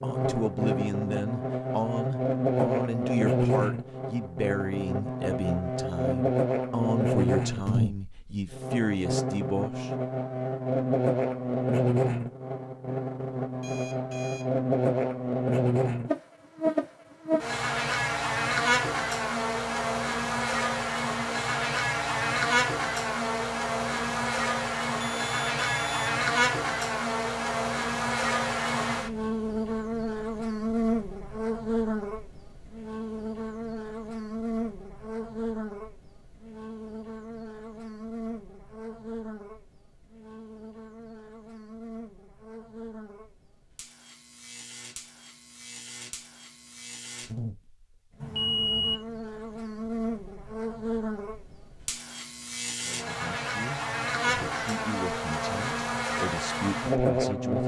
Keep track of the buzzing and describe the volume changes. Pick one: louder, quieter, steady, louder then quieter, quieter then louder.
quieter then louder.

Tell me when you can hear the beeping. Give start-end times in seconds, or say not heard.
13.6-14.5, 25.0-26.1, 48.2-49.0.